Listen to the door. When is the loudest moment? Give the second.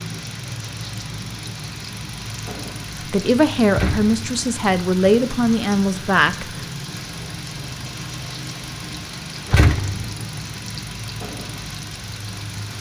10 s.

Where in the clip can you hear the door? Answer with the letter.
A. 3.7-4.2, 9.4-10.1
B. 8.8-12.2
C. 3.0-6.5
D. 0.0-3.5
A.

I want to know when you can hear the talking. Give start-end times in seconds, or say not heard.
3.0-6.5.